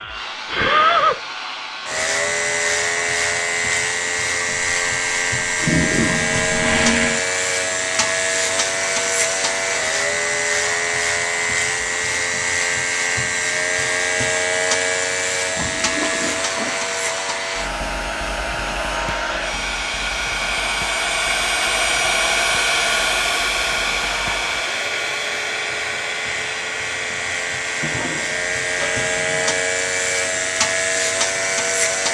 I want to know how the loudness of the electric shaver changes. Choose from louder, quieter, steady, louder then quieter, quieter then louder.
quieter then louder.